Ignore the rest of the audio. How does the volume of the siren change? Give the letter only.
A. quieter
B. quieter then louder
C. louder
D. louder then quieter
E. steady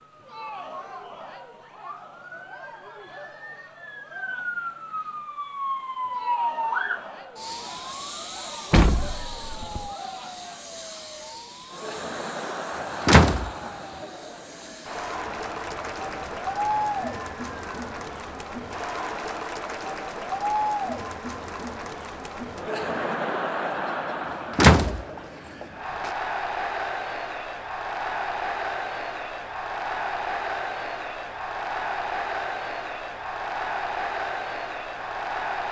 D.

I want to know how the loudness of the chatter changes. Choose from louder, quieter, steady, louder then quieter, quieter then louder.
louder.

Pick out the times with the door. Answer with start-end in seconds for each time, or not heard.
8.7-9.9, 13.0-13.7, 24.6-26.1.